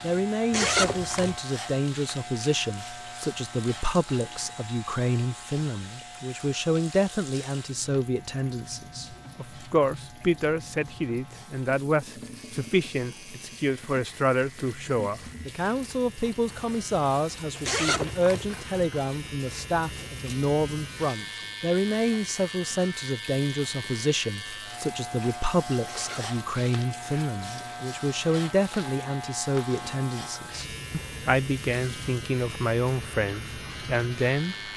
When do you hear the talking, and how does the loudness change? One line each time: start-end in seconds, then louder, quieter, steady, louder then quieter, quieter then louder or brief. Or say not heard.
0.0-34.7 steady.